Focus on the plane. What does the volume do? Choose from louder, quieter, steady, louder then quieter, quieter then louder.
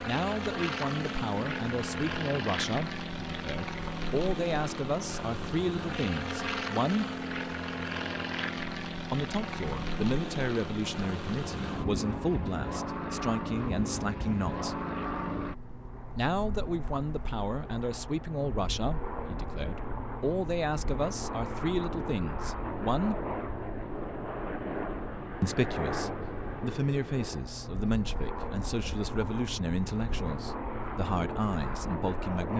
steady.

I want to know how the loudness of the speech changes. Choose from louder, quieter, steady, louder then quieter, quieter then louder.
steady.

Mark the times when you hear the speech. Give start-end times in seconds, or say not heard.
0.1-7.1, 9.1-14.8, 16.1-23.2, 25.4-32.5.